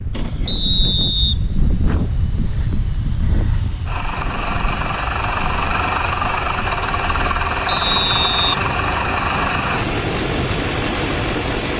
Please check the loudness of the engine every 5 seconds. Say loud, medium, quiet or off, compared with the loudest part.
medium, loud, loud.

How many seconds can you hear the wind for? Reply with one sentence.
You can hear the wind for 12 seconds altogether.